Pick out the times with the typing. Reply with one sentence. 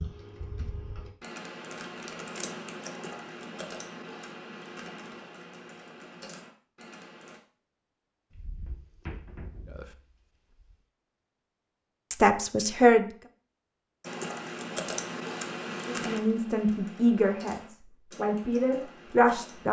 You can hear the typing from 0.0 to 7.4 s and from 14.0 to 19.6 s.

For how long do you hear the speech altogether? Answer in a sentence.
The speech can be heard for 5 seconds in total.